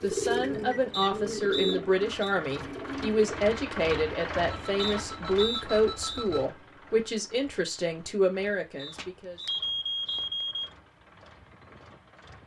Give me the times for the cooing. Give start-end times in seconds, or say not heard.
0.0-3.2.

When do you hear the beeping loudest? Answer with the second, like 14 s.
10 s.